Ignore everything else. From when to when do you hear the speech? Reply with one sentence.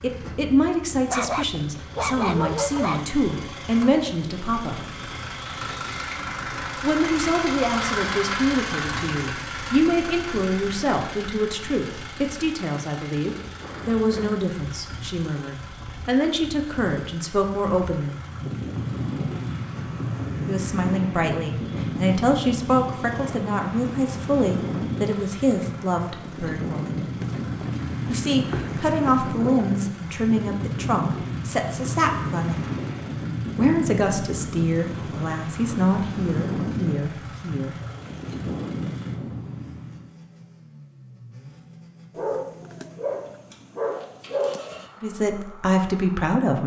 You can hear the speech from 0.0 to 4.8 s, from 6.8 to 18.2 s, from 20.4 to 27.1 s, from 28.1 to 32.7 s, from 33.5 to 37.8 s and from 45.0 to 46.6 s.